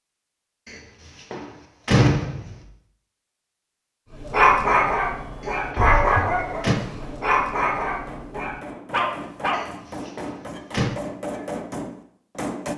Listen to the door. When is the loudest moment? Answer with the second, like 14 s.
2 s.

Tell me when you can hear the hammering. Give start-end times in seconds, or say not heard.
5.1-12.7.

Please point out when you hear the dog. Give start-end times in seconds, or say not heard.
4.2-9.7.